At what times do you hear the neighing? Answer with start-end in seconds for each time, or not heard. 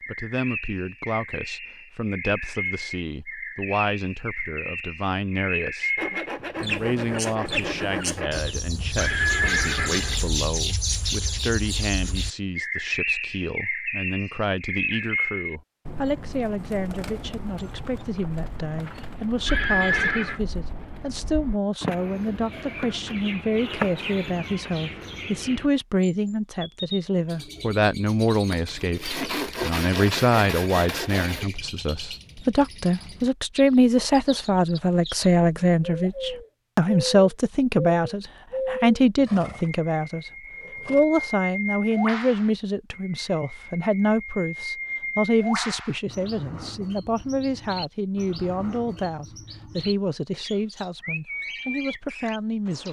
8.9-10.3, 19.4-20.4, 39.1-39.7, 40.5-41.0.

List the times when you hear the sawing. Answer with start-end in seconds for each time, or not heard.
6.0-8.5, 28.5-31.4.